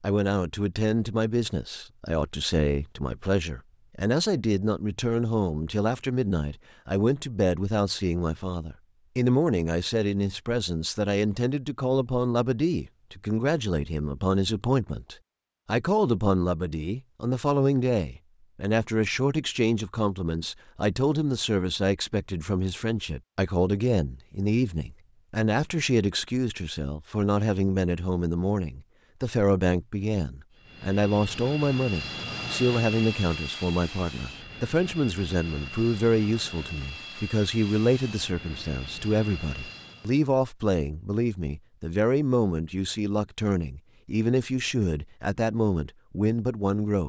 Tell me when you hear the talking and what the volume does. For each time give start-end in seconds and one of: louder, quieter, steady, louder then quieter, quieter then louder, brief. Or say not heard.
0.0-47.0 steady.